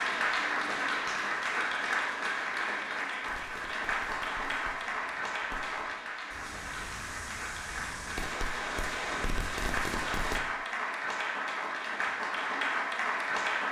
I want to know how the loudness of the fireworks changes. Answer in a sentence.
The loudness of the fireworks goes up.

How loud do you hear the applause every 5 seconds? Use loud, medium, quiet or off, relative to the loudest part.
loud, medium, loud.